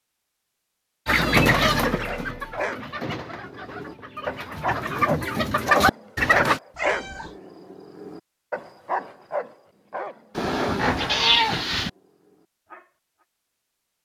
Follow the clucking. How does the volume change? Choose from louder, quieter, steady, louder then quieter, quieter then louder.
quieter then louder.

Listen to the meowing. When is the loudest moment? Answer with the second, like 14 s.
11 s.